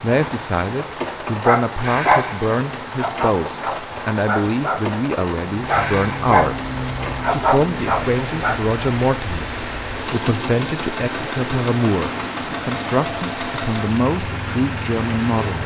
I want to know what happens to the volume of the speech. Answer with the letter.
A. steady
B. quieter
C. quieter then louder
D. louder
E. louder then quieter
A.